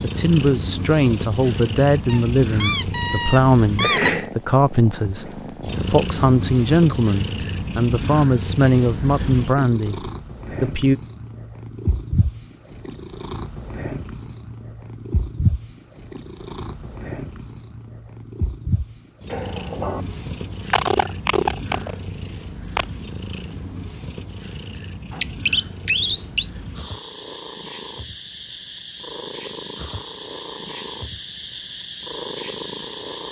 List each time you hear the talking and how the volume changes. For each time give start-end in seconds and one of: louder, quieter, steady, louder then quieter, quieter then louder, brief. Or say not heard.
0.0-10.9 steady.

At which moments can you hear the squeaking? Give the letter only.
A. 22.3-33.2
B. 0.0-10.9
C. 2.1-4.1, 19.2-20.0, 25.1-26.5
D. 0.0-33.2
C.